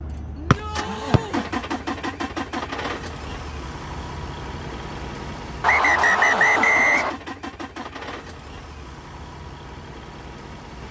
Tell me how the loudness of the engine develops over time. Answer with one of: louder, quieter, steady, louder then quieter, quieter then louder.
quieter.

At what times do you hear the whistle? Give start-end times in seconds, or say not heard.
0.5-1.2, 5.6-7.2.